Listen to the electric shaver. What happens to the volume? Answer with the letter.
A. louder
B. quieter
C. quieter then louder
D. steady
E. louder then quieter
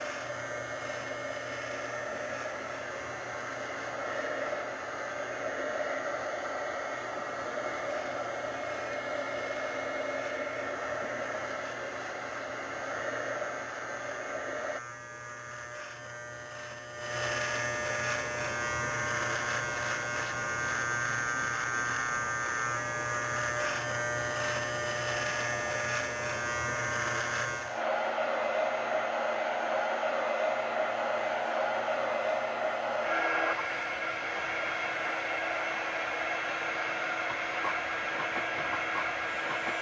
E.